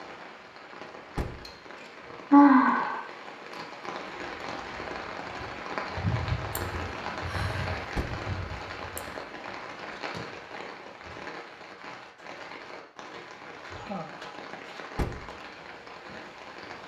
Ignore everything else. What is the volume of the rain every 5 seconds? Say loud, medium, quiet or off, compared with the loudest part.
medium, loud, medium, medium.